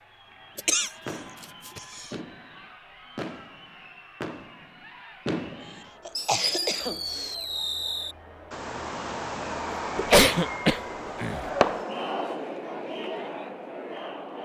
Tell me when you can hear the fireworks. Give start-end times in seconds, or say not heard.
1.1-12.1.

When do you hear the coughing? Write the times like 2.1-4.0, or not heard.
0.6-2.2, 6.0-7.3, 9.9-11.4.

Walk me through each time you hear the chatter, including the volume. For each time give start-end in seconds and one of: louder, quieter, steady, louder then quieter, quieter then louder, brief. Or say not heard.
0.0-14.4 louder.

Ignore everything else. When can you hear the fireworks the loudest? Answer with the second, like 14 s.
12 s.